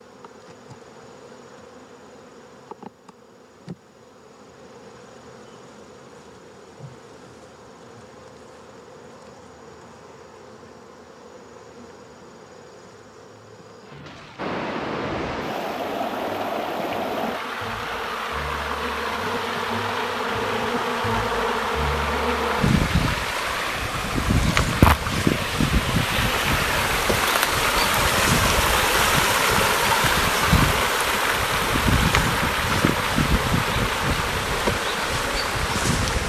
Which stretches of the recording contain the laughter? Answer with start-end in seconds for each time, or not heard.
not heard.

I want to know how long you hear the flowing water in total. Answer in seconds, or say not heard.
22 s.